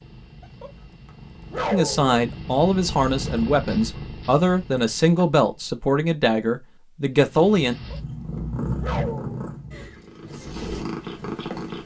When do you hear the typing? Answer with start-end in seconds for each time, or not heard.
not heard.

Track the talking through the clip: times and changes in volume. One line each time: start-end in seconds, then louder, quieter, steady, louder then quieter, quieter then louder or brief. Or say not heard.
1.7-7.8 steady.